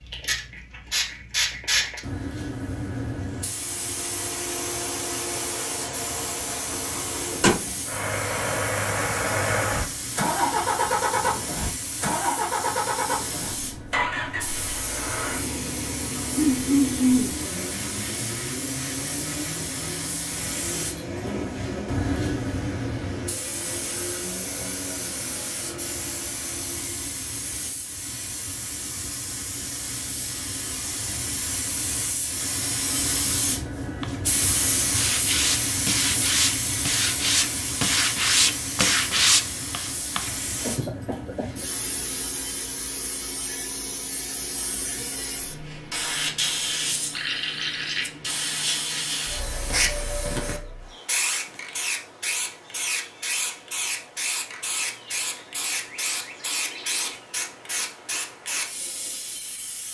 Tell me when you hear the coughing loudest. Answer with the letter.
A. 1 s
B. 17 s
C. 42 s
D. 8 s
B.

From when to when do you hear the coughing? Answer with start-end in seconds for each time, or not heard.
16.4-17.4, 40.6-41.5.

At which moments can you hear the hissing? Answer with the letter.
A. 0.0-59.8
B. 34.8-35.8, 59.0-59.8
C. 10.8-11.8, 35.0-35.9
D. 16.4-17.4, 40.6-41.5
A.